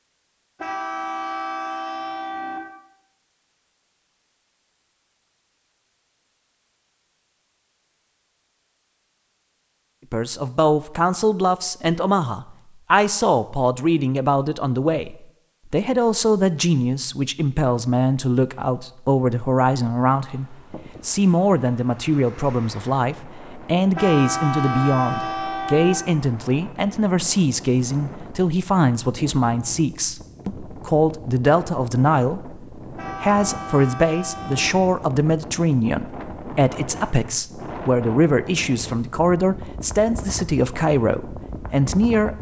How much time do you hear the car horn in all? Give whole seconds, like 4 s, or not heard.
6 s.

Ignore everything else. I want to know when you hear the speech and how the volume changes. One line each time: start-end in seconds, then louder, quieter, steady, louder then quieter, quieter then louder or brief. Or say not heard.
10.1-42.3 steady.